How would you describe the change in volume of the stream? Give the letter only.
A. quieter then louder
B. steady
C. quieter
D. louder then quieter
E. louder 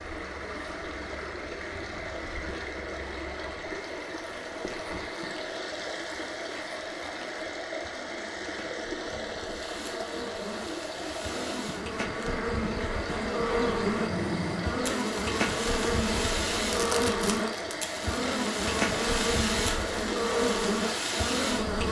B.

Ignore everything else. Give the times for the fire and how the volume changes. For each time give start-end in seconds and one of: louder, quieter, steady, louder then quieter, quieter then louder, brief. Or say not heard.
9.6-21.8 louder.